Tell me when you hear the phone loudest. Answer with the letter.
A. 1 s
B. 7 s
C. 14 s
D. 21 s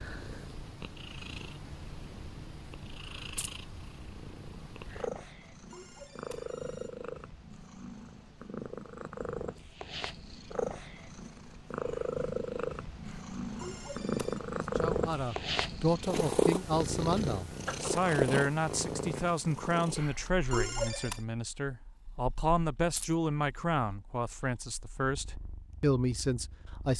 D.